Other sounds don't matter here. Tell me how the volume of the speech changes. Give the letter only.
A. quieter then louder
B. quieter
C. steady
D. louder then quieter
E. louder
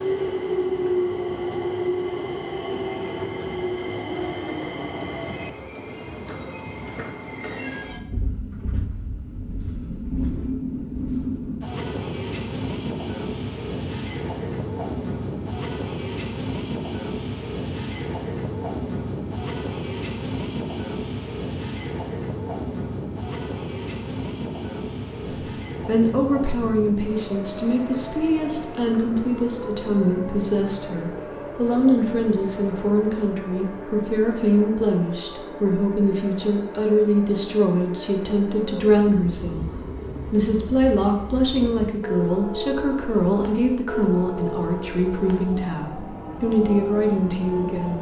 C.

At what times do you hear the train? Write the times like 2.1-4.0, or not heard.
0.0-47.9.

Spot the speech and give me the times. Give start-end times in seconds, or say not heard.
25.2-47.9.